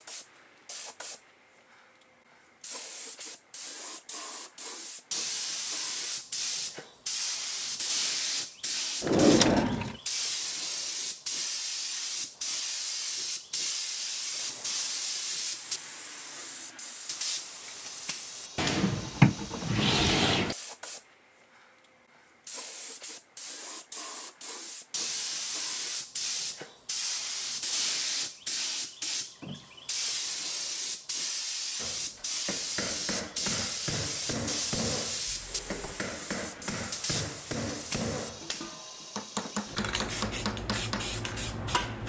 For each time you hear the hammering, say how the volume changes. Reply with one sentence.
You can hear the hammering from 31.8 to 42.0 s, at a steady volume.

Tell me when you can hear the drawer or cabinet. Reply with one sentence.
The drawer or cabinet can be heard from 9.0 to 9.9 s, from 18.6 to 20.6 s and from 35.2 to 36.0 s.